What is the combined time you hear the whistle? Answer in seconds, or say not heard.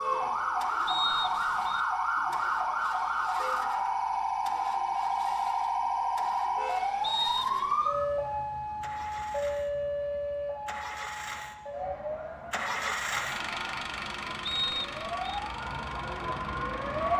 3 s.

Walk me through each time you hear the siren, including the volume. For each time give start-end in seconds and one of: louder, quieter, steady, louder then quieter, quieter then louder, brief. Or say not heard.
0.0-17.1 quieter.